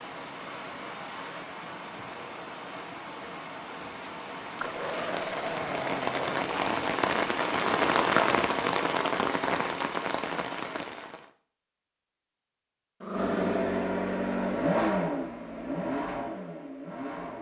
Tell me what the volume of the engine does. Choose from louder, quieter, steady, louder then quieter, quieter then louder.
quieter.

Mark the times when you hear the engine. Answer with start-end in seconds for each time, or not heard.
13.1-17.3.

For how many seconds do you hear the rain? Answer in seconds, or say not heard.
11 s.